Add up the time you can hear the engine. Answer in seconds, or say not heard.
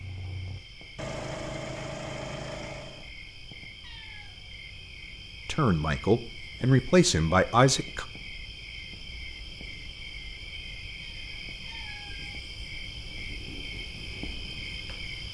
3 s.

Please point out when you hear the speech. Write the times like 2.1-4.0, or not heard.
5.5-8.1.